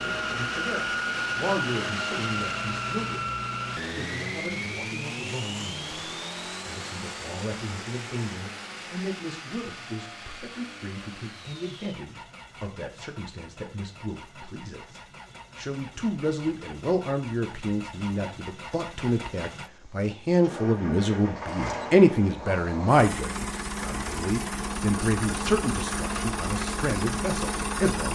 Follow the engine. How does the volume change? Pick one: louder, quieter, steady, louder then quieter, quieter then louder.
quieter then louder.